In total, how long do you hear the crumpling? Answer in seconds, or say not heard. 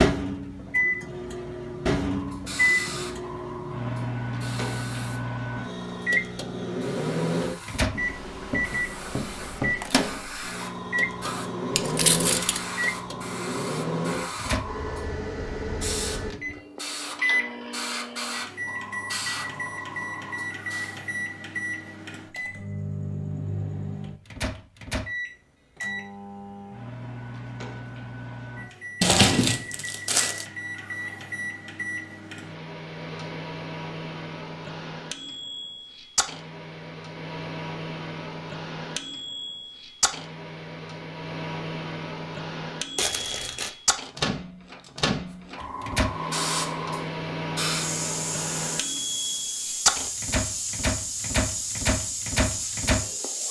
3 s.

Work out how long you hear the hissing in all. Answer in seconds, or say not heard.
27 s.